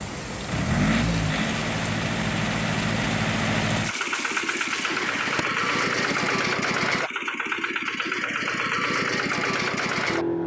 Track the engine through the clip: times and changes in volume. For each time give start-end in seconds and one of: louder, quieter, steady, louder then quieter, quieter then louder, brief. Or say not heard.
0.0-10.4 steady.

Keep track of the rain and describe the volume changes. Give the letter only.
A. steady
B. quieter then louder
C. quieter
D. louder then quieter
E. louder
A.